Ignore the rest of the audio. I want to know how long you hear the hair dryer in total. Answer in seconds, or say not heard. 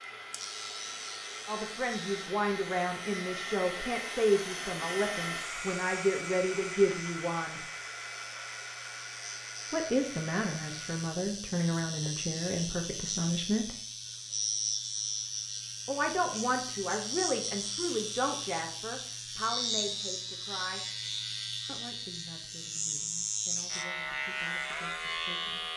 11 s.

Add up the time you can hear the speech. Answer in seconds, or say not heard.
19 s.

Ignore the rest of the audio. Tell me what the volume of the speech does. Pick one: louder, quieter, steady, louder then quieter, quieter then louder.
quieter.